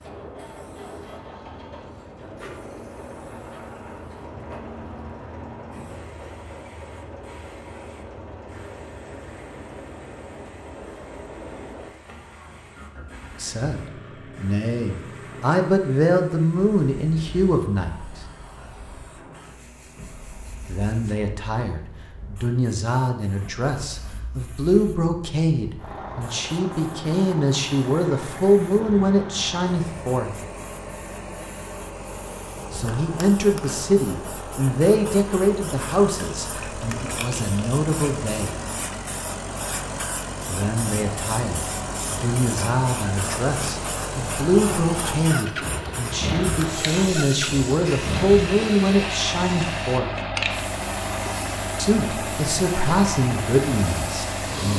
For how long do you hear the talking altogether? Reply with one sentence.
The talking can be heard for 33 seconds in total.